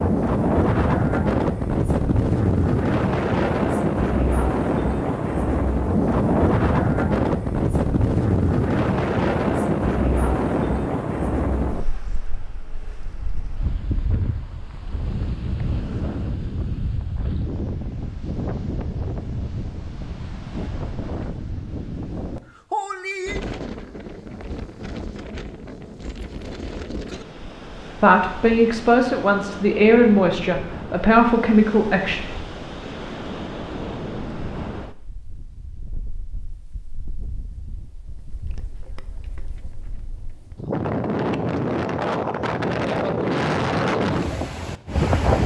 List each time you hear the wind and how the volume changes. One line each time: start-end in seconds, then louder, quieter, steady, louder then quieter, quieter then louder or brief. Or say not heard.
0.0-45.4 quieter then louder.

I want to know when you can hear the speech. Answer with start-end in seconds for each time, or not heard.
28.0-32.2.